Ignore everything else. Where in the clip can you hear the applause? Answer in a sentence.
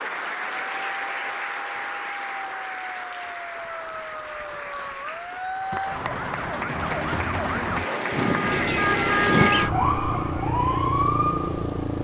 The applause can be heard from 0.0 to 9.4 s.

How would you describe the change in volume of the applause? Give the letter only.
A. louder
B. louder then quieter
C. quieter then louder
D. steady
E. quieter
C.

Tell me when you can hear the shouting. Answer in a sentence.
The shouting can't be heard in this clip.